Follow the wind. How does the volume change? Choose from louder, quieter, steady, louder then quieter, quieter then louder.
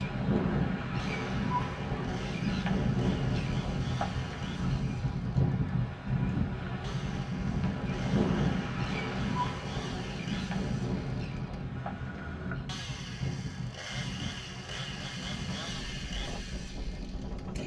quieter.